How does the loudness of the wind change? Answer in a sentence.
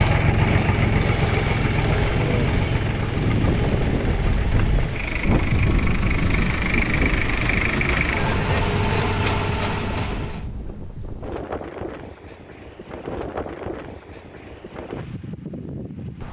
The loudness of the wind goes down.